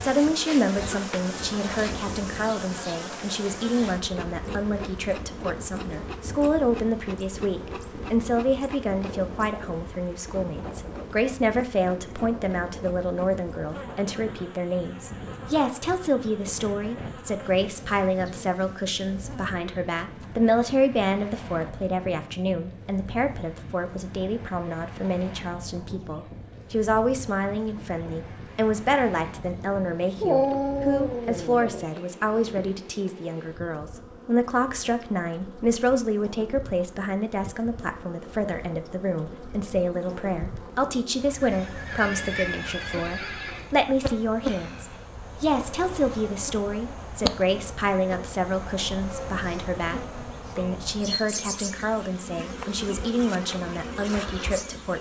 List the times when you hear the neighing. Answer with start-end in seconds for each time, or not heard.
41.4-43.7.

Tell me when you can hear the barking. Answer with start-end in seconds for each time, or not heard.
30.2-32.7.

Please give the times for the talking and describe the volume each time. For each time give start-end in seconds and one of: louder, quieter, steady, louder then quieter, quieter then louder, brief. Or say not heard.
0.0-54.9 steady.